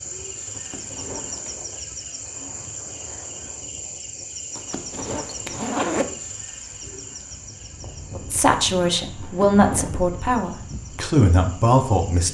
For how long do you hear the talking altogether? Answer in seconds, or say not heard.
4 s.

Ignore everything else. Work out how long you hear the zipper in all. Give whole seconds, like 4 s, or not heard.
3 s.